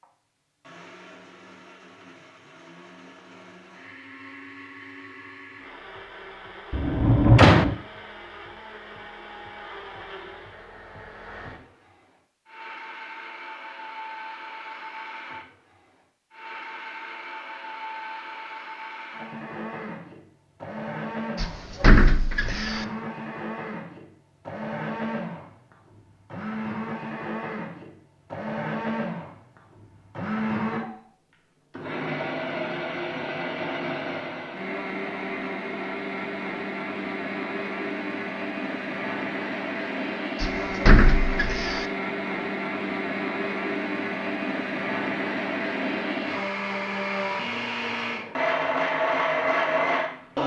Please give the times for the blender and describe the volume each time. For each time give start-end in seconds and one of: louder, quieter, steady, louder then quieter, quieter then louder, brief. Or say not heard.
0.0-50.4 louder.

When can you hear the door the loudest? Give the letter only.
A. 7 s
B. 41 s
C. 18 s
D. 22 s
A.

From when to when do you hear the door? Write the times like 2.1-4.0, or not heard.
6.7-7.8, 21.4-22.9, 40.4-41.9.